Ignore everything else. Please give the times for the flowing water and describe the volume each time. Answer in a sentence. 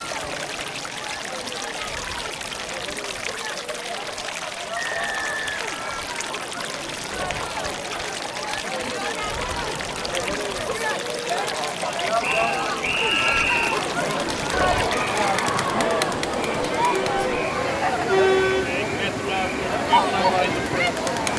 The flowing water can be heard from 0.0 to 21.3 s, at a steady volume.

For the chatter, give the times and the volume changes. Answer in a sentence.
The chatter can be heard from 0.0 to 21.3 s, getting louder.